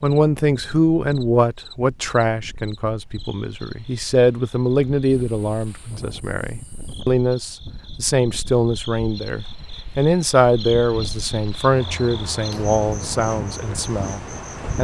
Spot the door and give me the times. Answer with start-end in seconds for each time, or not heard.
not heard.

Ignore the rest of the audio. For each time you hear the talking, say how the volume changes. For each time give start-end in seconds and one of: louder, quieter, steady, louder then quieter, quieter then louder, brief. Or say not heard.
0.0-14.7 steady.